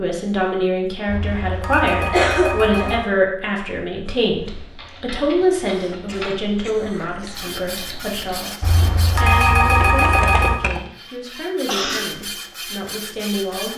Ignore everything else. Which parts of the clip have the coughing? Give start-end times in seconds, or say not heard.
2.1-3.0, 5.7-7.6, 11.7-12.2.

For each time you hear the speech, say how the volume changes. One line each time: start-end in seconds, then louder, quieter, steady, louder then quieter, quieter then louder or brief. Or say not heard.
0.0-13.7 quieter.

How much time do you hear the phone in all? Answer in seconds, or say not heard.
4 s.